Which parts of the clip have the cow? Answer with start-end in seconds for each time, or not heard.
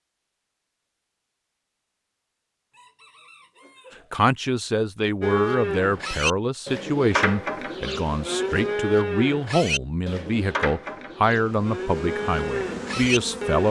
5.2-13.6.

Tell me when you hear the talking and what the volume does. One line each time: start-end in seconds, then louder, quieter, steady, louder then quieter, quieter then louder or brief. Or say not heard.
4.1-13.6 steady.